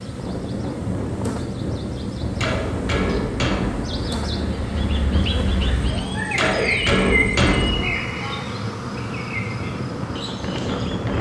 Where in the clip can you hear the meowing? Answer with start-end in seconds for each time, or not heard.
5.8-7.3.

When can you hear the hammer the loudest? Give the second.
7 s.